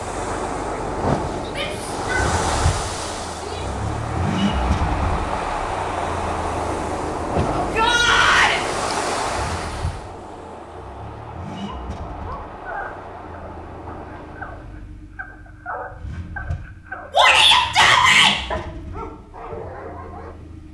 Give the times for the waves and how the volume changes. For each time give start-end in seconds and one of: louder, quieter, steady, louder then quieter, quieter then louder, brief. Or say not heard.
0.0-14.8 quieter.